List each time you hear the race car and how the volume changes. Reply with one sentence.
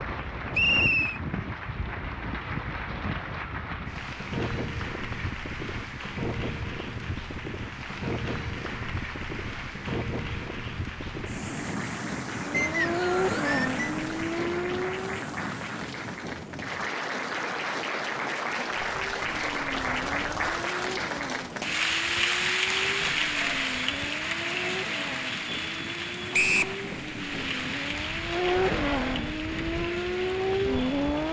You can hear the race car briefly from 12.4 to 15.2 s; and from 18.9 to 31.2 s, getting louder.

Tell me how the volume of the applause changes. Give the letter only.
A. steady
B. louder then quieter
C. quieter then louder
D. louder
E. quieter
B.